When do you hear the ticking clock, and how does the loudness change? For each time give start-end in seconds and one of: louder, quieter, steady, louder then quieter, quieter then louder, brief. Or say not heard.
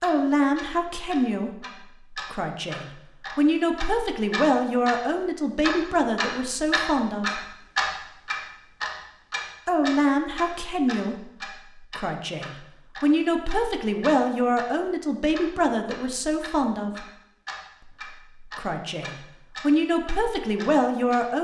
0.0-21.2 louder then quieter.